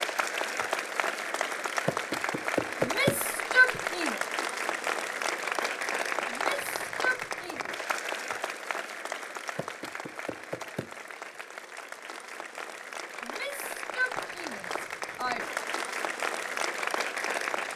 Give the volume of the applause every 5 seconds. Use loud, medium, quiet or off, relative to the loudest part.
loud, loud, medium, loud.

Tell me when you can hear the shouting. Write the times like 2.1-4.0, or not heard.
2.8-4.2, 6.3-7.6, 13.2-15.6.